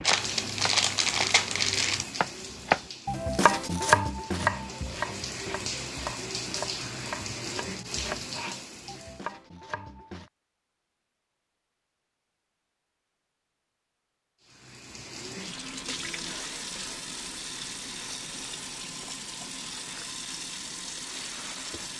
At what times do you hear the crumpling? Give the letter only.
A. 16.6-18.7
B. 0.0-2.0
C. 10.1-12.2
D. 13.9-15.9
B.